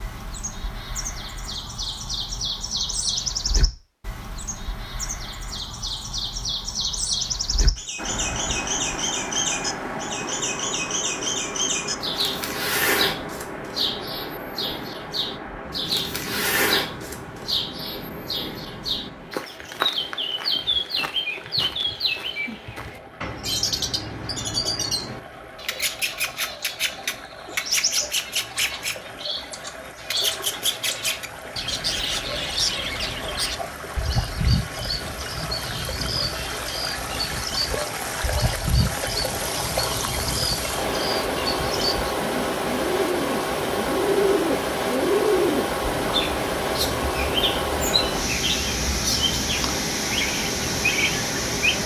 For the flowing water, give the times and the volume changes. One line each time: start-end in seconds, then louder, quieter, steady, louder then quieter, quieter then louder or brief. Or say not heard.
8.0-51.8 quieter then louder.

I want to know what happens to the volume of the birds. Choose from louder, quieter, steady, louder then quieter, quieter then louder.
steady.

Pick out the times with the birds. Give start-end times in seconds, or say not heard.
0.0-51.8.